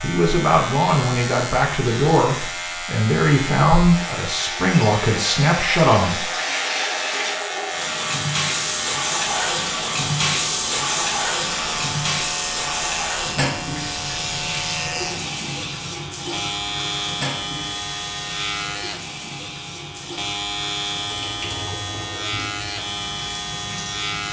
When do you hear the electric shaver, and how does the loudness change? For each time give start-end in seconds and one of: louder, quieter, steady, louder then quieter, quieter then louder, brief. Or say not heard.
0.0-24.2 steady.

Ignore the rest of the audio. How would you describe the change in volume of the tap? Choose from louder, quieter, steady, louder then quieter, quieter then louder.
louder then quieter.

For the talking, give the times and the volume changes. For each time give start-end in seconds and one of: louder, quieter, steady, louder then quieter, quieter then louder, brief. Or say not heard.
0.0-6.2 steady.